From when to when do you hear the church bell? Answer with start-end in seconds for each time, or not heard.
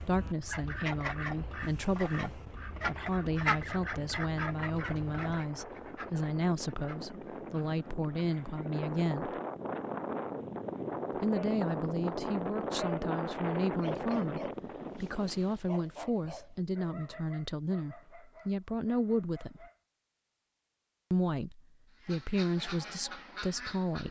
not heard.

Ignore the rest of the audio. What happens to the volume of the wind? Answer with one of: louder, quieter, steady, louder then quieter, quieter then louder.
louder.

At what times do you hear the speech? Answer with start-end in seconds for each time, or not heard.
0.0-9.3, 11.2-19.6, 21.1-24.0.